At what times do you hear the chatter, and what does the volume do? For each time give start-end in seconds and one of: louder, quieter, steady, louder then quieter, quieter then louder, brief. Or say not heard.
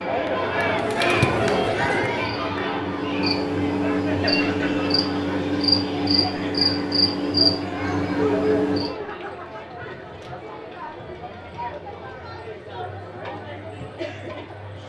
0.0-14.8 quieter.